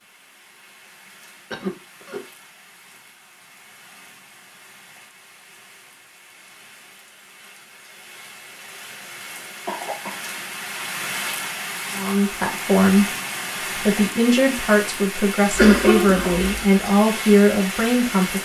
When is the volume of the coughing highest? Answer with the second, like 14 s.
16 s.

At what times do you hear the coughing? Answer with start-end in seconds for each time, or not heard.
1.5-2.2, 9.7-10.3, 15.5-16.6.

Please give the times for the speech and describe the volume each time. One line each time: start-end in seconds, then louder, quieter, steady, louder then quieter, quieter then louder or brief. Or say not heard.
11.9-13.1 brief
13.8-18.4 steady.